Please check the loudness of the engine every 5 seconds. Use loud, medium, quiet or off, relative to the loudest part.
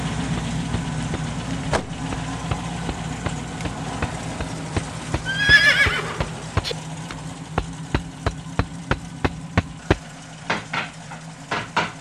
loud, medium, medium.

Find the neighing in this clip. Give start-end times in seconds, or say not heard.
5.2-6.8.